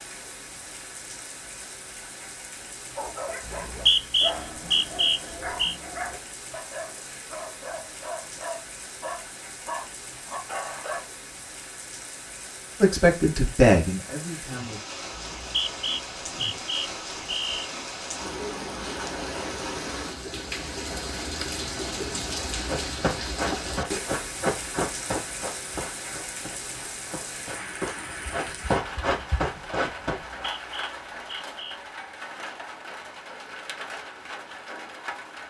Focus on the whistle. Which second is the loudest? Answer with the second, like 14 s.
4 s.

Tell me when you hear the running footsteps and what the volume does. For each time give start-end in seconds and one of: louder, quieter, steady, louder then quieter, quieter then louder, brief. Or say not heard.
22.6-30.2 quieter then louder.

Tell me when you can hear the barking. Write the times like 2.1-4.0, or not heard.
3.0-11.0.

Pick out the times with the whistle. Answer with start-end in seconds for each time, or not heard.
3.5-5.8, 15.2-17.7, 30.2-31.8.